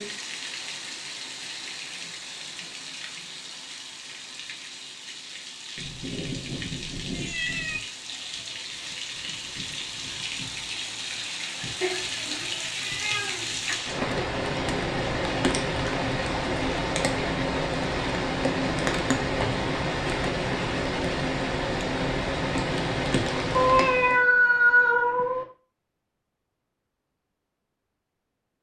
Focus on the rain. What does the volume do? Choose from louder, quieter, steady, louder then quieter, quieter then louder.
louder.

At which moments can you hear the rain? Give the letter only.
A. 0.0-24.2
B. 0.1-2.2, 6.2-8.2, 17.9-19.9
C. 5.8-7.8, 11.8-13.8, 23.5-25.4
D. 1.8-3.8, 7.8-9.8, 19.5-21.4
A.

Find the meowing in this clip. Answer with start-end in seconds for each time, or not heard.
5.8-7.8, 11.8-13.8, 23.5-25.4.